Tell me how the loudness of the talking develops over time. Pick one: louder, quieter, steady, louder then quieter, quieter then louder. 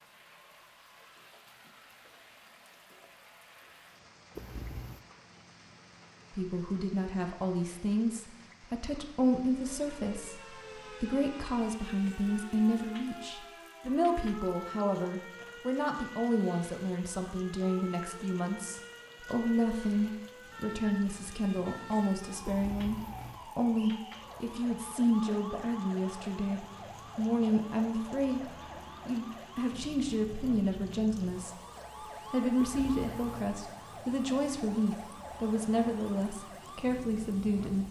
steady.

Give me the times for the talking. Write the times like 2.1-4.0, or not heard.
6.3-31.6, 32.3-37.8.